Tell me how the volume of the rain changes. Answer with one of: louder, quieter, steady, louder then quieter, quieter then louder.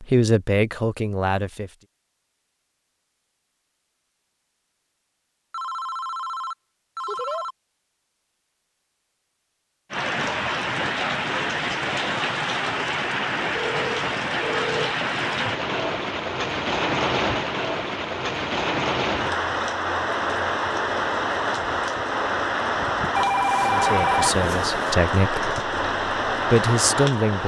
steady.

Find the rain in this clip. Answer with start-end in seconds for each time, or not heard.
9.9-27.4.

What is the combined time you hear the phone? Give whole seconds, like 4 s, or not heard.
5 s.